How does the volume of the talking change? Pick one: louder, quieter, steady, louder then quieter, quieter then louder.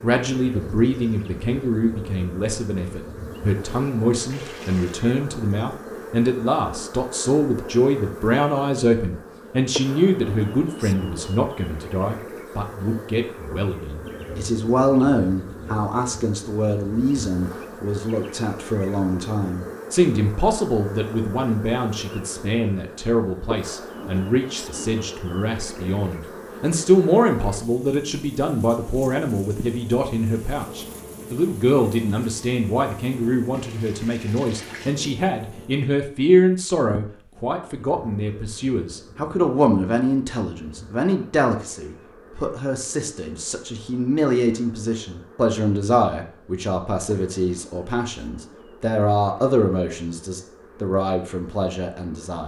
steady.